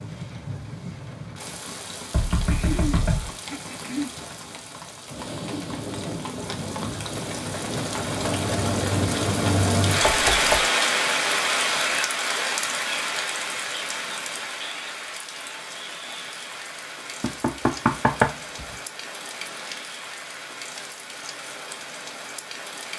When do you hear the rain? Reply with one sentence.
You can hear the rain from 0.0 to 22.9 s.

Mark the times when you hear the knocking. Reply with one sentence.
You can hear the knocking from 2.1 to 3.3 s, from 10.0 to 10.7 s and from 17.2 to 18.4 s.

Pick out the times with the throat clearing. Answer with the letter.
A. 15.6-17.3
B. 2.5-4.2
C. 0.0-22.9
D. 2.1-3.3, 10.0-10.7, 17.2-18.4
B.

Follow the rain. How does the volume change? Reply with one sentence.
The loudness of the rain goes up, then down.